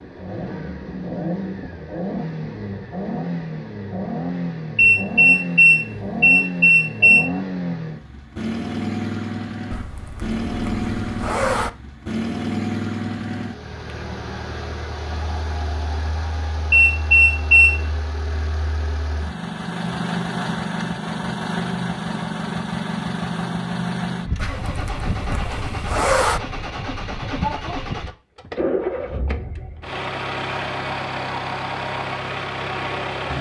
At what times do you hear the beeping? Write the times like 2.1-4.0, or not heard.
4.8-7.2, 16.7-17.8.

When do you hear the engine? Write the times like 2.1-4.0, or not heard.
0.0-33.3.